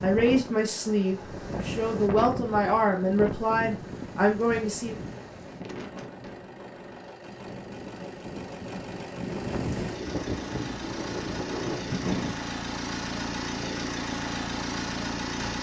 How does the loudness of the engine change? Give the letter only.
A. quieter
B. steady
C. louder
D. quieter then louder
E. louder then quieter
C.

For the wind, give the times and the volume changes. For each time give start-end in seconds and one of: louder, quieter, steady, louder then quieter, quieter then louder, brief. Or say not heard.
0.0-12.3 quieter then louder.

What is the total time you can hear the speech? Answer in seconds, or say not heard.
5 s.